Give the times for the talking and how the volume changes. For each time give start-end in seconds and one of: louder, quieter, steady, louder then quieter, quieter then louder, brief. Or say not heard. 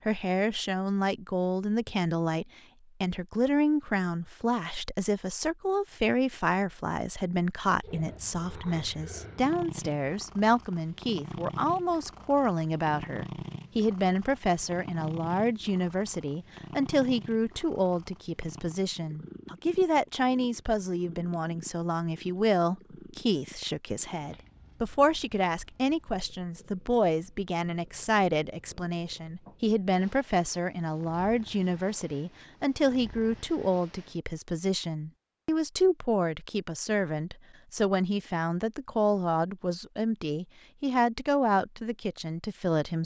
0.1-43.0 steady.